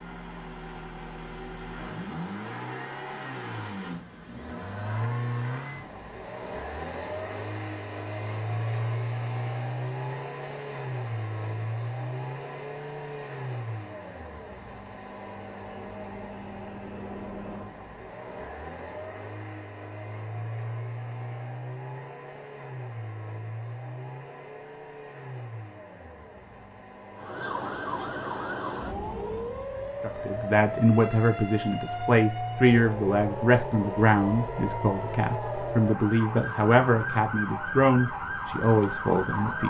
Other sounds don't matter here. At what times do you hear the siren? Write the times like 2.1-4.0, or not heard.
27.1-39.6.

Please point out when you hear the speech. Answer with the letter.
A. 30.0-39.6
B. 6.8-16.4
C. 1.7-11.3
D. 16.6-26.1
A.